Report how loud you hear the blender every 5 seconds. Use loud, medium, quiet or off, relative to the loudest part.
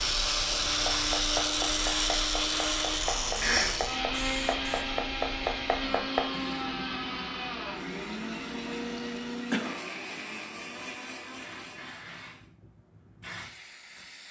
loud, medium, quiet.